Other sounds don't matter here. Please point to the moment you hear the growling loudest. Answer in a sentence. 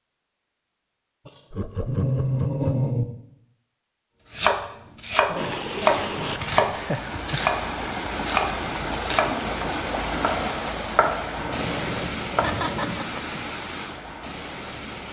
The loudest moment of the growling is at 3 seconds.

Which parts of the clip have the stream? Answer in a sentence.
The stream can be heard from 5.3 to 15.0 s.